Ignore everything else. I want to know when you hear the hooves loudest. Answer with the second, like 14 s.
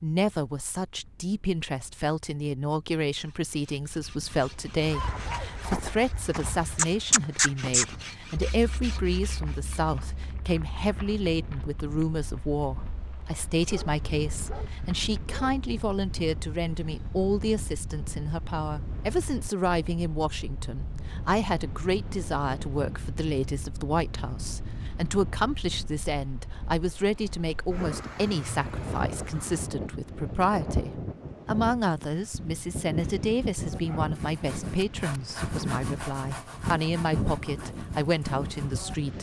7 s.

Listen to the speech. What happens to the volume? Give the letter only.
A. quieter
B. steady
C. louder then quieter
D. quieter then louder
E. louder
B.